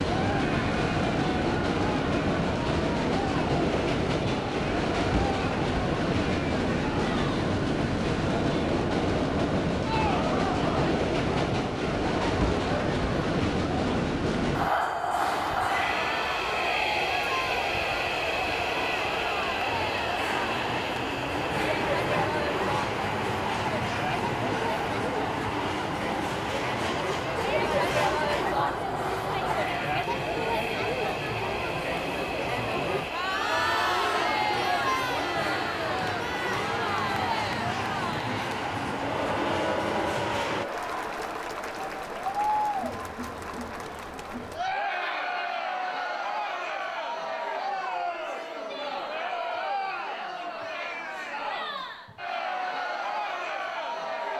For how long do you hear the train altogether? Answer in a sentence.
The train can be heard for 41 seconds in total.